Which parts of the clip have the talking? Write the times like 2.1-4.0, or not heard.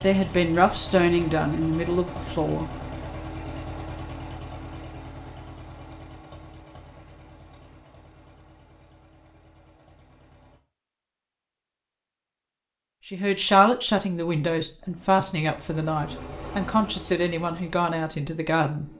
0.0-2.7, 13.1-18.9.